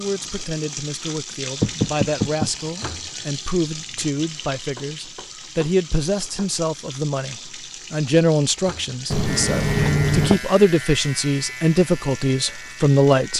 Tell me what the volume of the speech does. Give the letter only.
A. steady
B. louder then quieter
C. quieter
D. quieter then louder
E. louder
E.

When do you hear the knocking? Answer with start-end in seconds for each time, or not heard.
1.6-2.5, 4.8-6.5, 9.1-10.4.